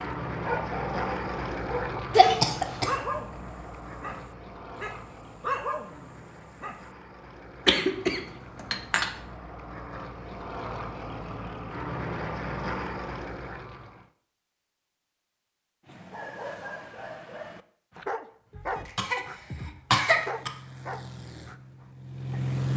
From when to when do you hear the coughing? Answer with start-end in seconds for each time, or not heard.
2.1-2.9, 7.7-9.1, 18.6-20.5.